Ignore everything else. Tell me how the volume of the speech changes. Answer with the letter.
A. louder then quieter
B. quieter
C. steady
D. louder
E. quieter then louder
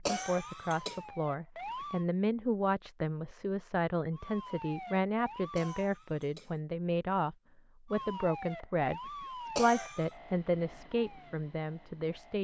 C.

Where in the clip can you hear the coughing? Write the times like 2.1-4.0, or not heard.
0.1-1.0, 5.5-6.5, 9.6-10.1.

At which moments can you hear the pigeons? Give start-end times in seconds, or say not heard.
not heard.